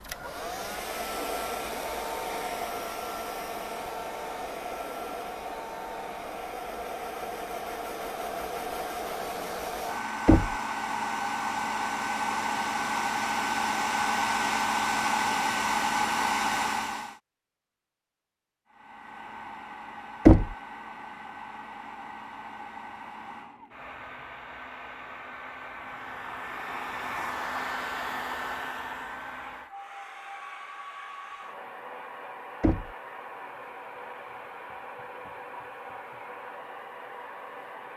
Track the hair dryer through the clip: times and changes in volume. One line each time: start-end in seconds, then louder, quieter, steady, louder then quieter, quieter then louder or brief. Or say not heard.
0.0-17.2 louder
18.6-37.9 louder then quieter.